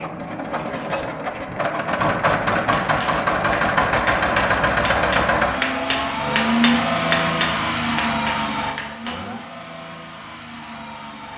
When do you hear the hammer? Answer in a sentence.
You can hear the hammer from 2.7 to 9.2 s.